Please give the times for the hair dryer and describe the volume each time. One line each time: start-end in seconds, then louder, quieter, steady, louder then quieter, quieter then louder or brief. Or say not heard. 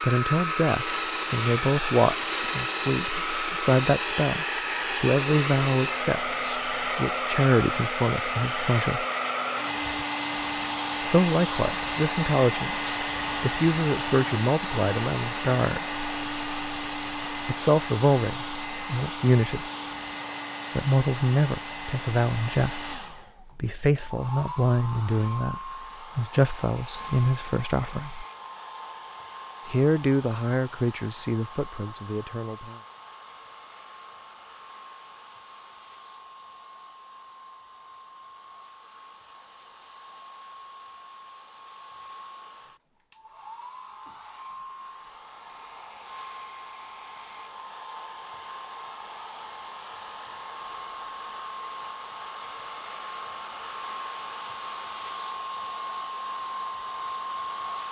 0.0-57.8 quieter then louder.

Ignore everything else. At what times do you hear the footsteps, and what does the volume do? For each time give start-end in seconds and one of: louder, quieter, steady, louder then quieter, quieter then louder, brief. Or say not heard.
not heard.